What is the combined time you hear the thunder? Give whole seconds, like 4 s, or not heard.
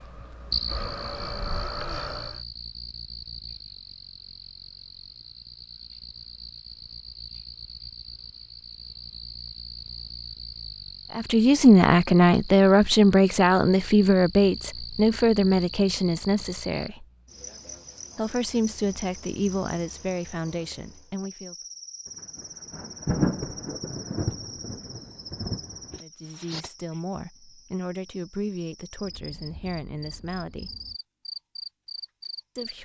4 s.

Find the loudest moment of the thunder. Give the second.
23 s.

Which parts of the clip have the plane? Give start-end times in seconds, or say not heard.
0.0-2.4.